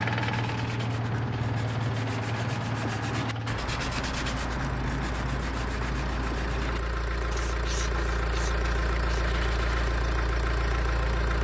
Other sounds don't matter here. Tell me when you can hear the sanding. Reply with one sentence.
You can hear the sanding from 0.1 to 9.9 s.